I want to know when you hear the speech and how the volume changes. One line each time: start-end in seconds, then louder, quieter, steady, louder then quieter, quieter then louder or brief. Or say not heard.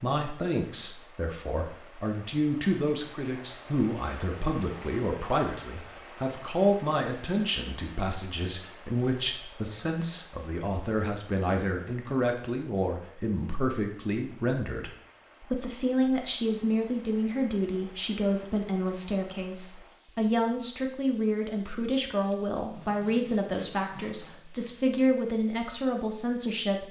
0.0-26.8 steady.